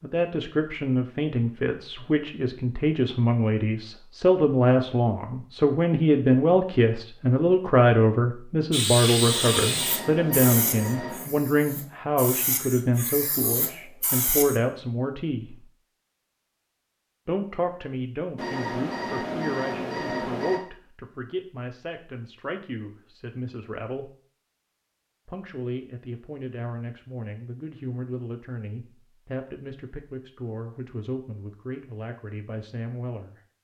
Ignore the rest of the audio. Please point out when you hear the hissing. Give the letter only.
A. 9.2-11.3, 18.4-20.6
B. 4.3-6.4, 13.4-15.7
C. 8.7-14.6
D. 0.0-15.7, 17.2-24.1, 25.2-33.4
C.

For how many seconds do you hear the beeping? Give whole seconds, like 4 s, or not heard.
4 s.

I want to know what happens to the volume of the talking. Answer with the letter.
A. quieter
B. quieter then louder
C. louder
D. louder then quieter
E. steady
A.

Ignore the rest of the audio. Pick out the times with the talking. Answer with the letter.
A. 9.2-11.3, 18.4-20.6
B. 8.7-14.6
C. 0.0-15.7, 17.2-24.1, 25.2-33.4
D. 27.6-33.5
C.